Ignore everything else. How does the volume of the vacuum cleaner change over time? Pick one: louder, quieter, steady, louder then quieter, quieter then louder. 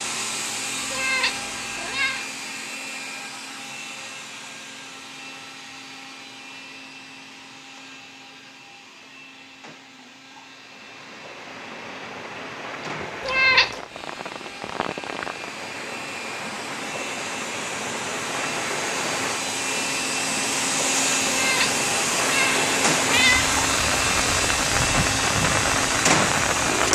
quieter then louder.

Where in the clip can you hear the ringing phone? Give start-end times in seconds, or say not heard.
not heard.